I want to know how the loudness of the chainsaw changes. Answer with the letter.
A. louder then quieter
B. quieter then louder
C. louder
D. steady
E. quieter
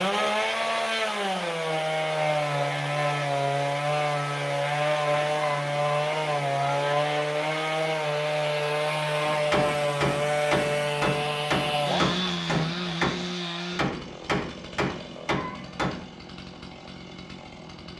E.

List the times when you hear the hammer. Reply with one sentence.
The hammer can be heard from 9.2 to 16.1 s.